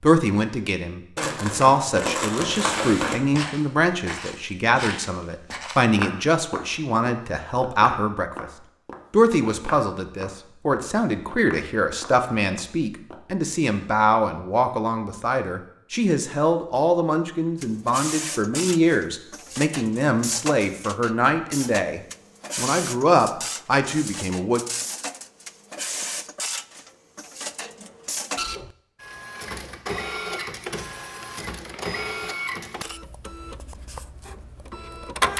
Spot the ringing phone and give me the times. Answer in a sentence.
You can't hear the ringing phone here.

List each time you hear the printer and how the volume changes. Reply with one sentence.
You can hear the printer from 17.6 to 35.3 s, at a steady volume.